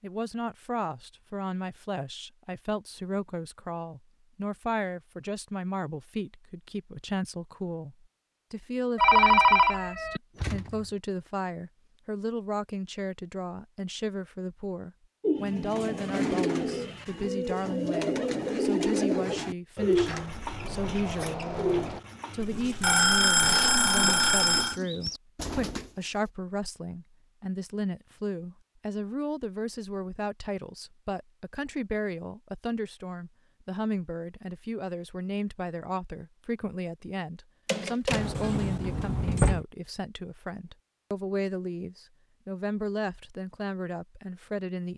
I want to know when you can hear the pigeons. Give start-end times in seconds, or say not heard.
15.2-26.1.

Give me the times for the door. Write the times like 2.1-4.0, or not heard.
10.3-10.9, 19.9-22.0, 38.1-39.6.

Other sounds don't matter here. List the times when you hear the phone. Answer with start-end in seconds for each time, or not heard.
8.9-10.2, 22.4-24.8, 37.6-38.3.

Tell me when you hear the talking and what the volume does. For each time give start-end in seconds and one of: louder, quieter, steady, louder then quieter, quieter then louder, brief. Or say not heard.
0.0-44.9 steady.